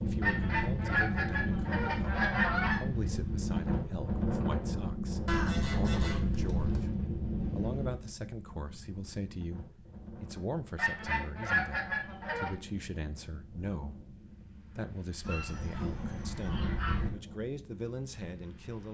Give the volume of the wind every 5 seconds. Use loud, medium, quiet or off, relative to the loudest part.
loud, loud, quiet, quiet.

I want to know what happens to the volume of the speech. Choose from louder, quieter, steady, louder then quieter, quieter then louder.
steady.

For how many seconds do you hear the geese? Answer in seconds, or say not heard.
8 s.